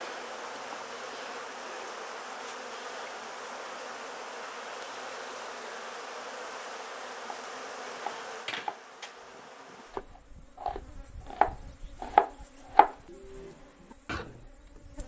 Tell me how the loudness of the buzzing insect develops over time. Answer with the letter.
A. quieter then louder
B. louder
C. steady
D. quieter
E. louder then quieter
D.